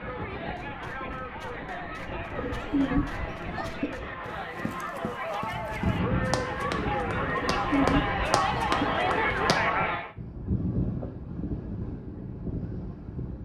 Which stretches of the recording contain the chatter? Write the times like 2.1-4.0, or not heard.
0.0-10.2.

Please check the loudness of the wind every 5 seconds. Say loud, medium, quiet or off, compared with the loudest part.
medium, loud, loud.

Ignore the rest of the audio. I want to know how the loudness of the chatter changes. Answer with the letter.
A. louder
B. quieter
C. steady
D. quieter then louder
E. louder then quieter
A.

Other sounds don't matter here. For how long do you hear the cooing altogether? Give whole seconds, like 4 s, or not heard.
3 s.